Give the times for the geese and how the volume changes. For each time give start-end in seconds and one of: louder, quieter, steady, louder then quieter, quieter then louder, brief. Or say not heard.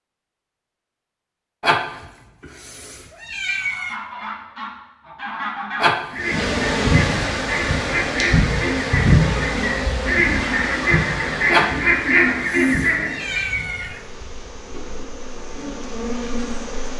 3.5-13.4 louder.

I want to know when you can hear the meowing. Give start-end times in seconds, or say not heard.
1.6-4.0, 5.8-6.2, 11.5-14.0.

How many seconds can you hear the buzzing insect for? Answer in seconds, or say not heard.
11 s.